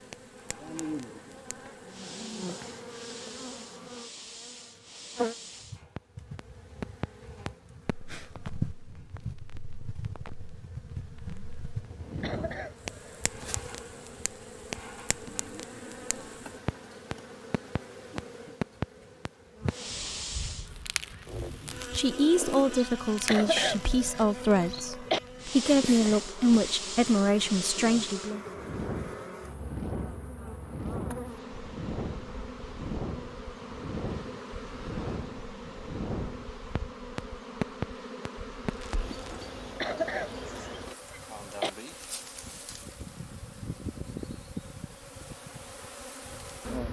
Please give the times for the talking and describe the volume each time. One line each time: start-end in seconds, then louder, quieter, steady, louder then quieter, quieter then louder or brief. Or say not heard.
21.9-28.4 steady.